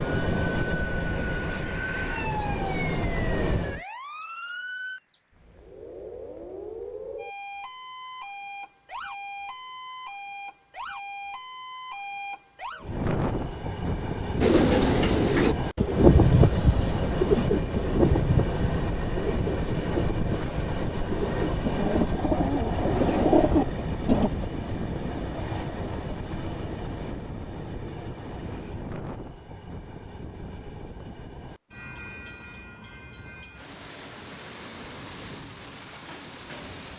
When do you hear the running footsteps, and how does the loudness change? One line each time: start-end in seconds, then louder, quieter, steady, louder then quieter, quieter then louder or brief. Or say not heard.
not heard.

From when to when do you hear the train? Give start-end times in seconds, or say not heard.
0.0-3.8, 12.8-36.9.